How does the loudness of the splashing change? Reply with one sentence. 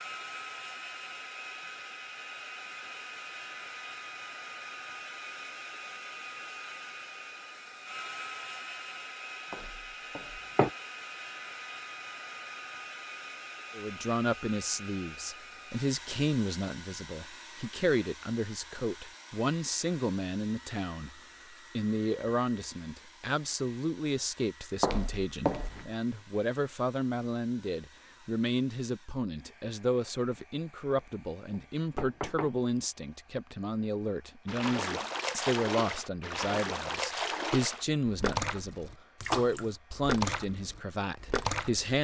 The loudness of the splashing stays about the same.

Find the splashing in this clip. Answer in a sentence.
The splashing can be heard from 34.5 to 41.9 s.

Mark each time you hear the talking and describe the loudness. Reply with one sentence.
The talking can be heard from 13.8 to 41.9 s, at a steady volume.